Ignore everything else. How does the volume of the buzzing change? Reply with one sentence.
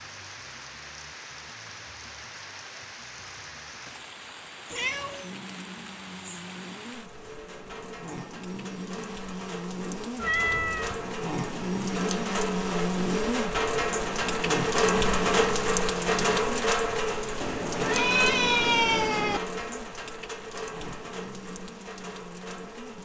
The volume of the buzzing goes up, then down.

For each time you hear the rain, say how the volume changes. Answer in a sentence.
The rain can be heard from 0.0 to 23.0 s, getting louder then quieter.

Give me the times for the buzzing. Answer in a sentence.
You can hear the buzzing from 5.2 to 23.0 s.